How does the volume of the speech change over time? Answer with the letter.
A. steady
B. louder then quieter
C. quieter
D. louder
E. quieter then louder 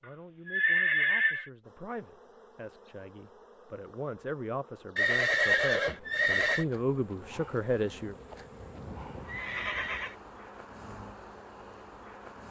D.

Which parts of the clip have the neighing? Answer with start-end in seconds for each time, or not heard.
0.5-1.5, 5.0-6.7, 8.3-10.2.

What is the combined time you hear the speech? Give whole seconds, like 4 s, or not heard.
8 s.